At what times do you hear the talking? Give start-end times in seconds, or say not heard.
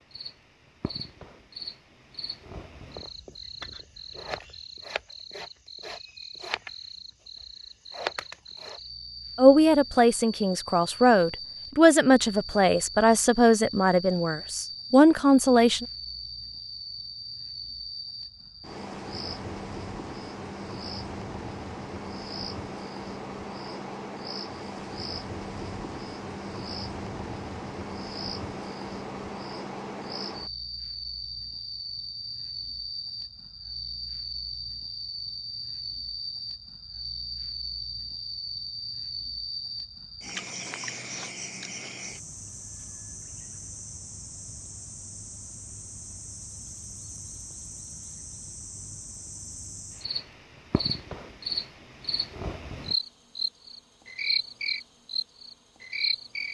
9.3-15.8.